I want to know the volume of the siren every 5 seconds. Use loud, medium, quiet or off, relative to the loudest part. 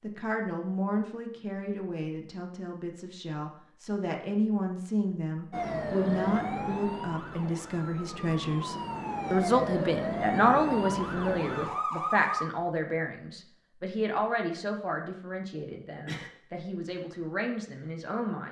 off, loud, loud, off.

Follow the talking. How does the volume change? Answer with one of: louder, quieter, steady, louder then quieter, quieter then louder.
louder then quieter.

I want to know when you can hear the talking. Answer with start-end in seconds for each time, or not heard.
0.0-18.4.